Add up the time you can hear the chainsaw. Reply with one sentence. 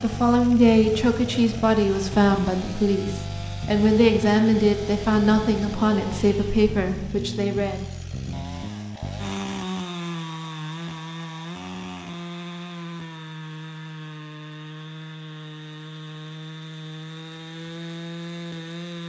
The chainsaw can be heard for 19 seconds in total.